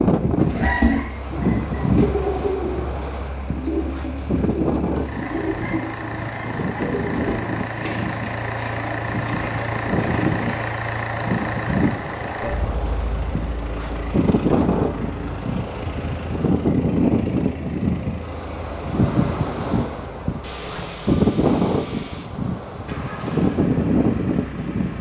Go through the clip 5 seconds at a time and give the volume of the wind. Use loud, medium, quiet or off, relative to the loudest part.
loud, medium, loud, loud, loud.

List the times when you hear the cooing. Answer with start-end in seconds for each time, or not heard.
0.3-10.8.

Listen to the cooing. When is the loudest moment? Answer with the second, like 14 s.
1 s.